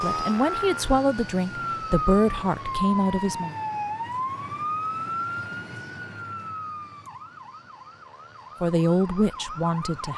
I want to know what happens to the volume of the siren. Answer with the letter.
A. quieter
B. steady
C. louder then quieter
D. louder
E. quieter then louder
A.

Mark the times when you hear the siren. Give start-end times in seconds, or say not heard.
0.0-10.1.